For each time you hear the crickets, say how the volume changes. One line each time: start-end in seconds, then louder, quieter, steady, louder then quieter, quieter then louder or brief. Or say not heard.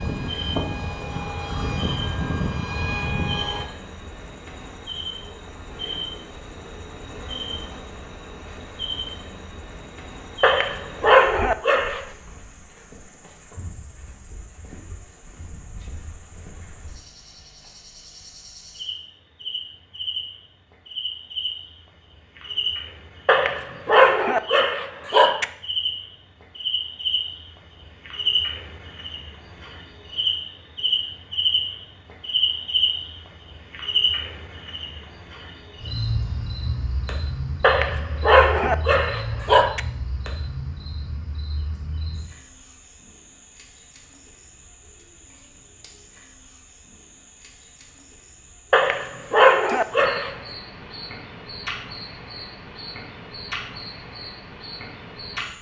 0.0-55.5 louder then quieter.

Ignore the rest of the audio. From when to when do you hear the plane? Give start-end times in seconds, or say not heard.
0.0-3.6.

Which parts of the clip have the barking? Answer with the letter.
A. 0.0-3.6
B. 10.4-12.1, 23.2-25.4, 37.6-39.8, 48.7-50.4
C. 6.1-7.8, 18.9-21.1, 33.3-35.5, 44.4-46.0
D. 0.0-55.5
B.